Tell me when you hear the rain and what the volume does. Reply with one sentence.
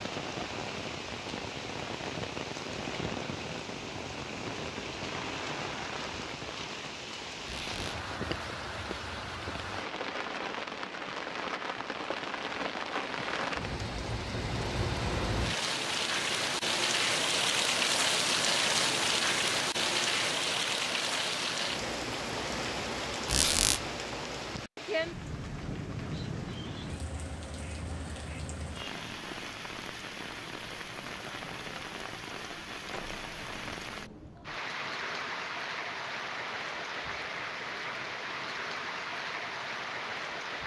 The rain can be heard from 0.0 to 40.6 s, getting louder then quieter.